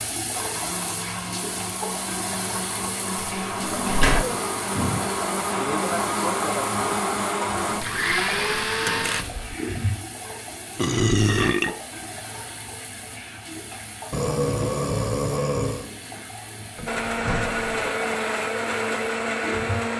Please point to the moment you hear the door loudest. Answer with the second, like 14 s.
4 s.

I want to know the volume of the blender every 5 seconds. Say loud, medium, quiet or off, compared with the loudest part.
medium, loud, off, loud.